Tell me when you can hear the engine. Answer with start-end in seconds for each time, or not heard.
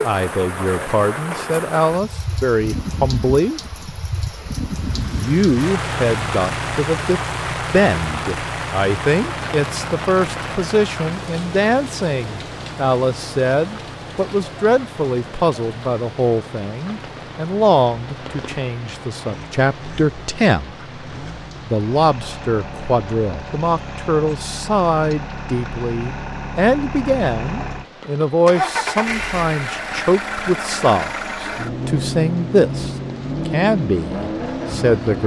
4.8-35.2.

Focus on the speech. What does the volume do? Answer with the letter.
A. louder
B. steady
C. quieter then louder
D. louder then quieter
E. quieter
B.